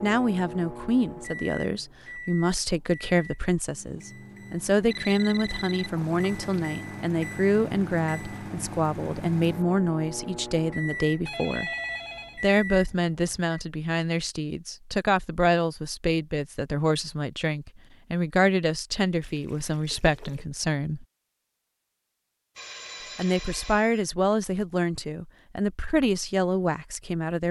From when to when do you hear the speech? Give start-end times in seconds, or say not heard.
0.0-11.7, 12.4-21.1, 23.1-27.4.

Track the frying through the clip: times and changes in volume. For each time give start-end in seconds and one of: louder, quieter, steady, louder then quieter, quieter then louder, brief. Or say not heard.
not heard.